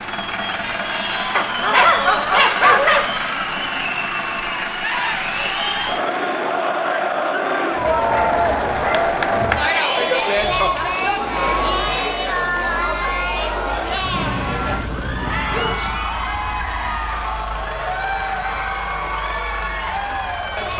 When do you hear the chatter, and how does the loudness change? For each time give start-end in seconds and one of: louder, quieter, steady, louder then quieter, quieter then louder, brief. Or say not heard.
0.0-20.7 louder then quieter.